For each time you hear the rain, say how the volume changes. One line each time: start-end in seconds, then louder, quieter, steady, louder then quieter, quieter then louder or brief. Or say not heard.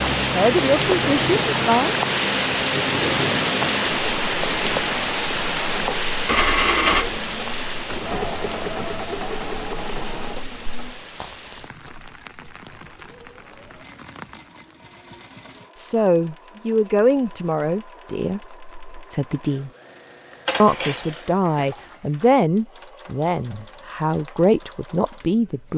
0.0-14.8 quieter.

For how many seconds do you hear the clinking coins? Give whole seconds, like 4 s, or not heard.
3 s.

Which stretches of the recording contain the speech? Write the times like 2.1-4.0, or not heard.
0.0-2.0, 15.8-19.7, 20.6-25.7.